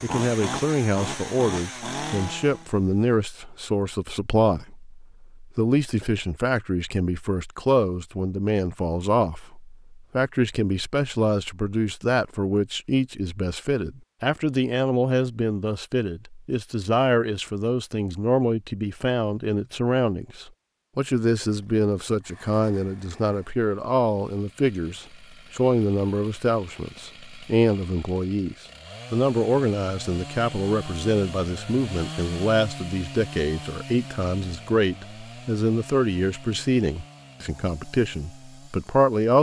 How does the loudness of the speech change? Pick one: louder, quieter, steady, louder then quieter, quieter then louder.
steady.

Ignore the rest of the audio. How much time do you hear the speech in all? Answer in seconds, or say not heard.
39 s.